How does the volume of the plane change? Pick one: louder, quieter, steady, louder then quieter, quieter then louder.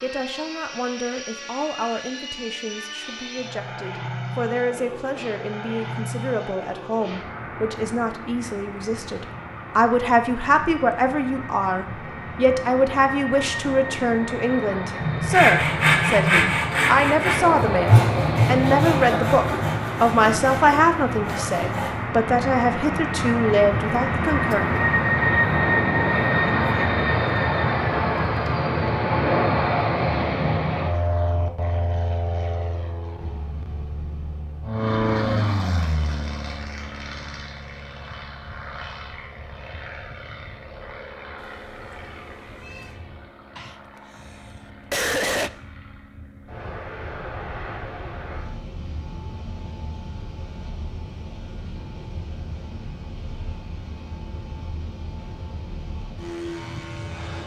louder then quieter.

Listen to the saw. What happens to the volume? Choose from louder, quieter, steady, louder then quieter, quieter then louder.
quieter.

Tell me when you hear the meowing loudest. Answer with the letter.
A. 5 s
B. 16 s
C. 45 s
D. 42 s
B.